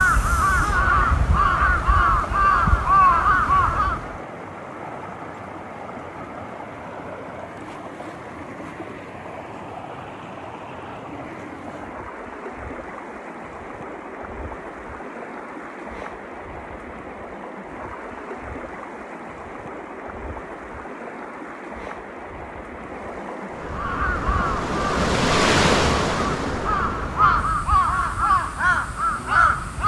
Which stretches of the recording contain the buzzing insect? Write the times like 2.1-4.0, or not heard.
not heard.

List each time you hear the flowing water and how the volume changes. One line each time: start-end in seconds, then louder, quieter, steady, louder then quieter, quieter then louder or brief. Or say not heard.
0.0-29.8 louder.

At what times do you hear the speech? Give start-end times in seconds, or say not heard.
not heard.